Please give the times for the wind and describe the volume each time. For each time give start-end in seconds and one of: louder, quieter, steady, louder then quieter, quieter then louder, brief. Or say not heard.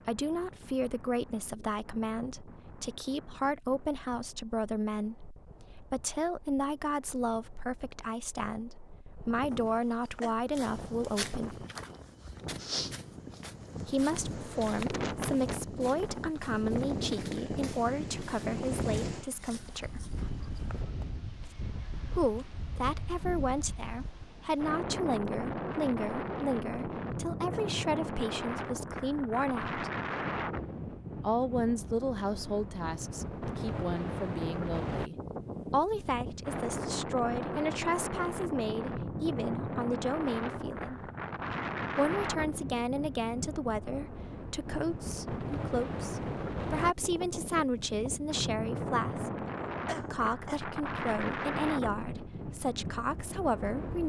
0.0-54.0 louder.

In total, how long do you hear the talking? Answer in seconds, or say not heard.
47 s.